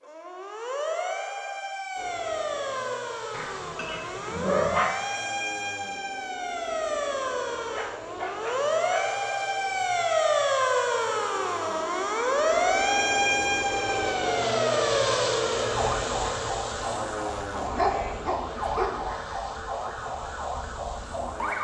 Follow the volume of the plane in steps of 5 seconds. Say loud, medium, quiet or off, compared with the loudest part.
medium, medium, loud, loud, medium.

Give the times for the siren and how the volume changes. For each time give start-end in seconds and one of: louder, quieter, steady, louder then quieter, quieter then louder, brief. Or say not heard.
0.0-21.5 louder then quieter.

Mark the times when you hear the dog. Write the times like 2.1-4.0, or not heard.
3.3-4.9, 7.7-9.1, 17.6-19.0.